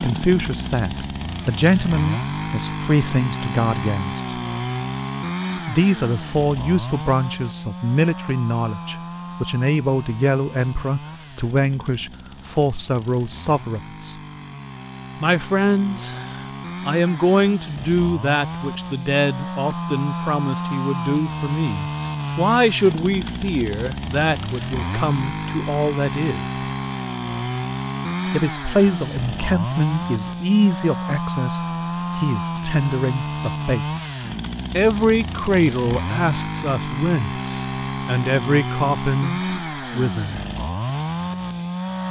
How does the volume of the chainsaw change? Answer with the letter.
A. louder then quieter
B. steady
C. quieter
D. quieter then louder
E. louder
D.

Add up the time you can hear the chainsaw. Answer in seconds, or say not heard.
42 s.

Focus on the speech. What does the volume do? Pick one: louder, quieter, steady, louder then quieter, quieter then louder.
steady.